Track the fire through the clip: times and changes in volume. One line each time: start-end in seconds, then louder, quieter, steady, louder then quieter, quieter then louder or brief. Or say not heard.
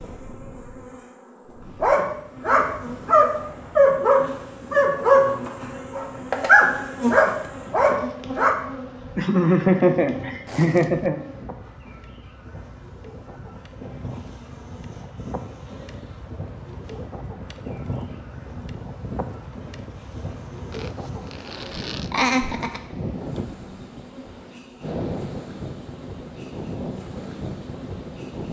not heard.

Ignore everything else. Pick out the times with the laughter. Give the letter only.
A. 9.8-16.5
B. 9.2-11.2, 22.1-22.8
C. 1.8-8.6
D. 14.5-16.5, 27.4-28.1
B.